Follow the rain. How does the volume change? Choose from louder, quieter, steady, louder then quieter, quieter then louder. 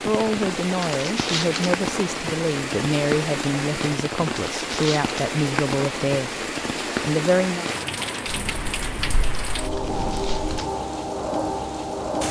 steady.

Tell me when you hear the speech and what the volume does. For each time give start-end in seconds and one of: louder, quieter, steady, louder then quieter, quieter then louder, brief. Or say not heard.
0.1-7.7 steady.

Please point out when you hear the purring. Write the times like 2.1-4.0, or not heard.
8.2-10.6.